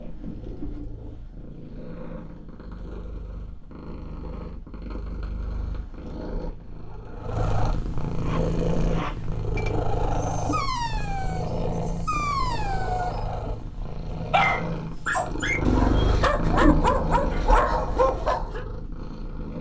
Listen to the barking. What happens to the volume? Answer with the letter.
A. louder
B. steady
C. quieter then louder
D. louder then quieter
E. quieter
A.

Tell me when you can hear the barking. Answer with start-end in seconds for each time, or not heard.
8.1-18.6.